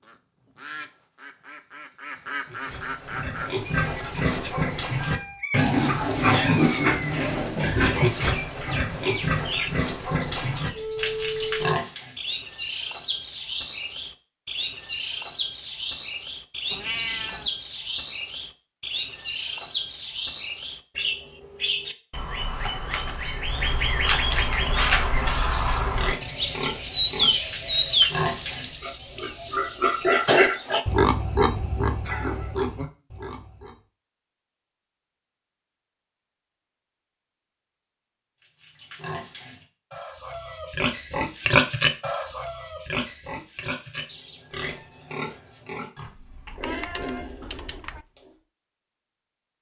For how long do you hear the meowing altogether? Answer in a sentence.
You can hear the meowing for 4 seconds altogether.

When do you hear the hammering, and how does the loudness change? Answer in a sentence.
You can't hear the hammering here.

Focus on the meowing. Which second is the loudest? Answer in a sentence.
The volume of the meowing peaks at 17 seconds.